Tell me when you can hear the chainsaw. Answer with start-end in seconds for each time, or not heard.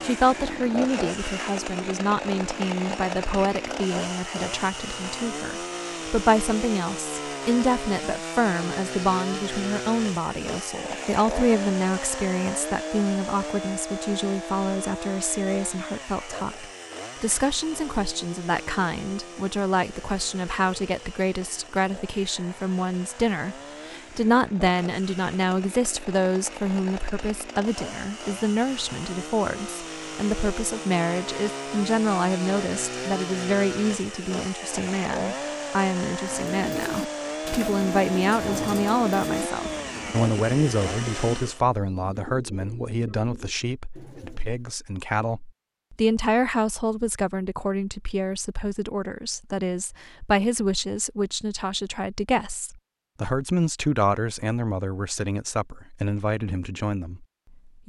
0.0-41.6.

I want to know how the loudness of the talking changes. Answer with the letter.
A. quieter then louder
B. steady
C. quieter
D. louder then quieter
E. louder
B.